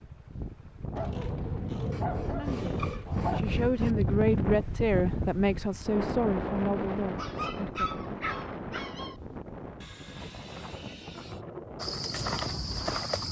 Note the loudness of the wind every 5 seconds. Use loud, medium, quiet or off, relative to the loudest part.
loud, loud, medium.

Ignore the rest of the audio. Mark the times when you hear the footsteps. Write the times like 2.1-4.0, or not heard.
11.8-13.2.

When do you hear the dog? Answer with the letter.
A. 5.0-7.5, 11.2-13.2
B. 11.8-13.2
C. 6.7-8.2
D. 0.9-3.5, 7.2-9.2
D.